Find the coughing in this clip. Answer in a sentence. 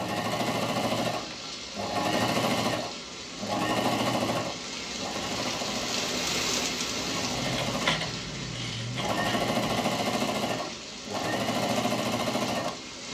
You can't hear the coughing here.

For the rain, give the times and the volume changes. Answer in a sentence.
You can hear the rain from 0.0 to 13.0 s, getting louder then quieter.